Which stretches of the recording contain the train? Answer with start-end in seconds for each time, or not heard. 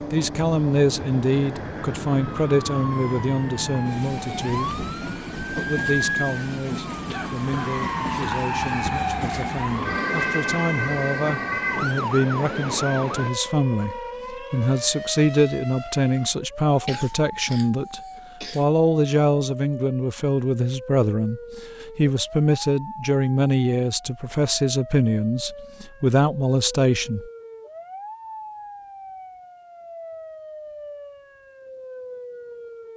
0.0-13.3.